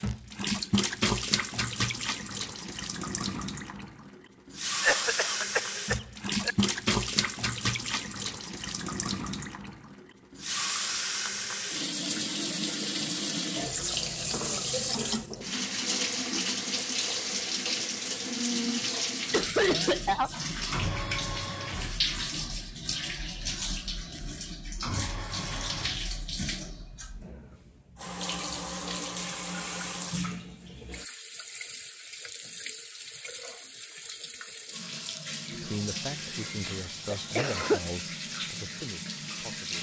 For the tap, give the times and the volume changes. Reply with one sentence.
The tap can be heard from 0.0 to 39.7 s, getting quieter.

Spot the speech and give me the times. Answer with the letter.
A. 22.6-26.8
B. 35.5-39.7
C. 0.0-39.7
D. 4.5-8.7
B.